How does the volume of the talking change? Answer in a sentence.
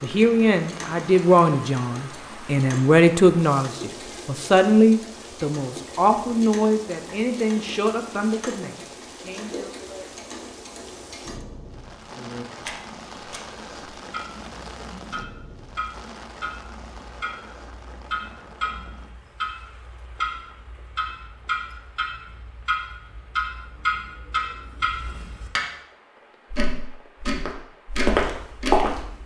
The volume of the talking goes down.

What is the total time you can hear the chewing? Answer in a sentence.
You can't hear the chewing here.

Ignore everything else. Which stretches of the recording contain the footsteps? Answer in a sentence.
The footsteps can be heard from 27.4 to 29.2 s.